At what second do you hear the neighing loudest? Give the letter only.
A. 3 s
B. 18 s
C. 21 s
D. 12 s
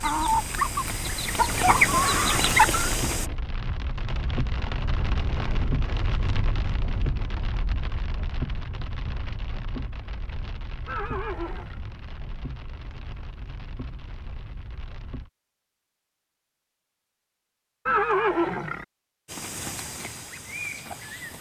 B.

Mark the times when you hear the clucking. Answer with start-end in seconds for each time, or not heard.
0.0-3.3, 19.2-21.3.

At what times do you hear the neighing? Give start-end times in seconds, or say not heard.
1.6-3.4, 10.8-11.8, 17.9-18.9.